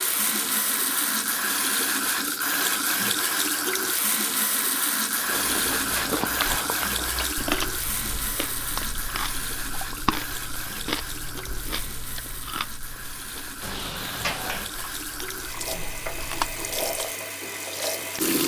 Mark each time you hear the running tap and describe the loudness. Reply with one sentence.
The running tap can be heard from 0.0 to 18.4 s, getting quieter then louder.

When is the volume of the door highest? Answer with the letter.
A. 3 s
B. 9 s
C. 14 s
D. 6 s
C.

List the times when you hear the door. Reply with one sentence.
The door can be heard from 5.3 to 6.6 s and from 13.6 to 14.8 s.